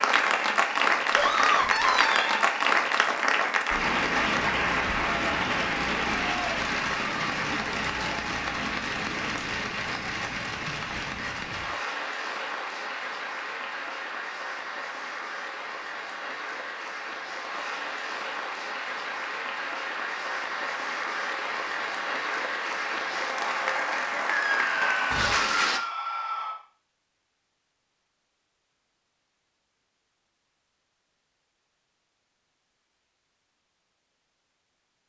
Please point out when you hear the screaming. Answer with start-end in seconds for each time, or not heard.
1.1-2.5, 24.3-26.6.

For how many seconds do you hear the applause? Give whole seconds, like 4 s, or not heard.
26 s.